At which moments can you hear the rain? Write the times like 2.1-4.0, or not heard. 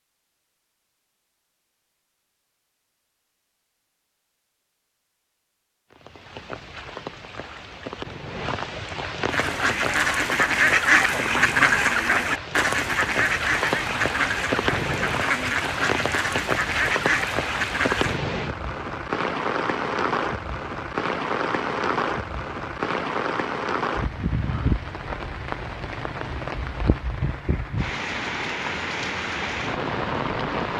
5.9-30.7.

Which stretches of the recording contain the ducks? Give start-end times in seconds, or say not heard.
9.3-18.2.